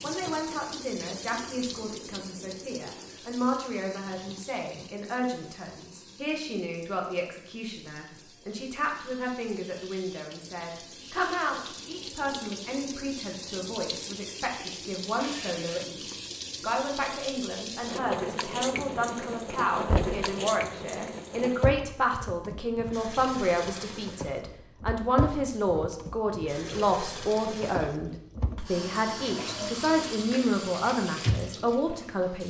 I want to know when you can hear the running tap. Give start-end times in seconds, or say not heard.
0.0-32.4.